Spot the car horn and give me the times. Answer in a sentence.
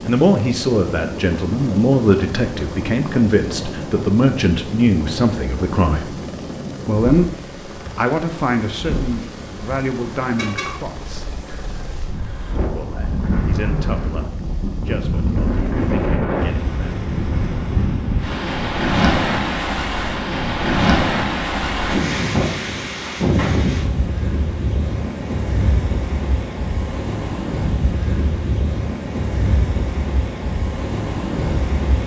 You can hear the car horn from 10.3 to 10.8 s.